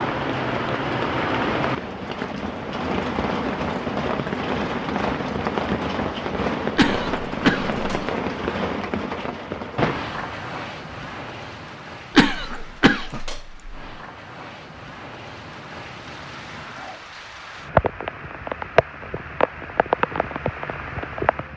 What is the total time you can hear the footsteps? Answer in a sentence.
The footsteps can't be heard in this clip.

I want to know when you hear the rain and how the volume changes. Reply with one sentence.
You can hear the rain from 0.0 to 21.5 s, getting quieter then louder.